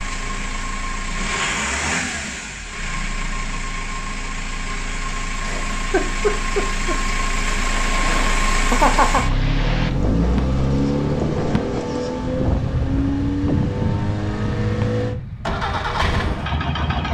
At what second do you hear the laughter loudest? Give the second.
9 s.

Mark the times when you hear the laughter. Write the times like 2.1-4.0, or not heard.
5.3-7.0, 8.7-9.3.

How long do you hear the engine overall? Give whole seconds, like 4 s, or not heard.
17 s.